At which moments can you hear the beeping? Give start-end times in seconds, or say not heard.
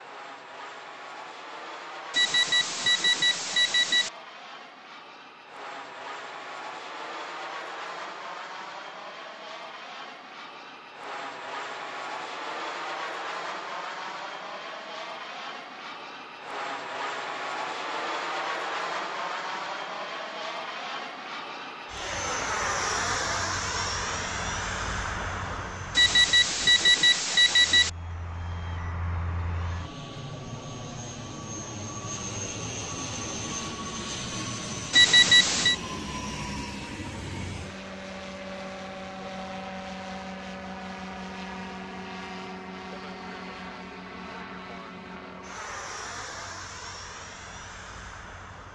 2.1-4.1, 25.9-27.9, 34.9-35.8.